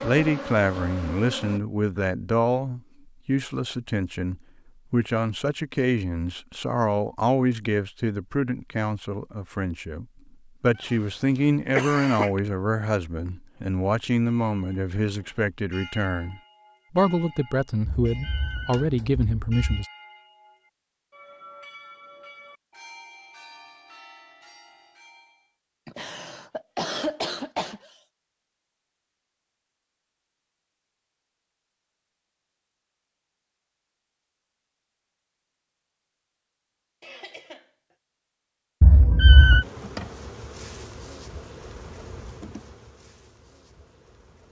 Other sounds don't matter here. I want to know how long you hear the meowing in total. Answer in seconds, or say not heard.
3 s.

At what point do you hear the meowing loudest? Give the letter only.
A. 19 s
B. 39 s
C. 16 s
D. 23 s
B.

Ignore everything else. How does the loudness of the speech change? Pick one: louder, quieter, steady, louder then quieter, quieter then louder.
steady.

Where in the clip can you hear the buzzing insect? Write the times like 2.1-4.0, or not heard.
0.0-1.6, 39.6-44.4.